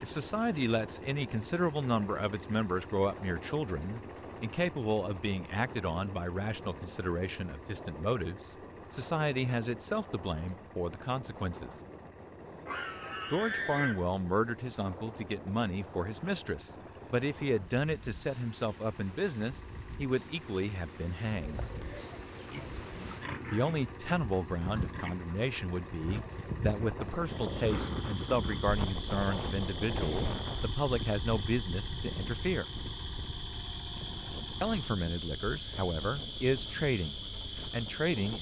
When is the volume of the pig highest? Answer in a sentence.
The volume of the pig peaks at 14 seconds.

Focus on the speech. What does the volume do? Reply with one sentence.
The volume of the speech stays about the same.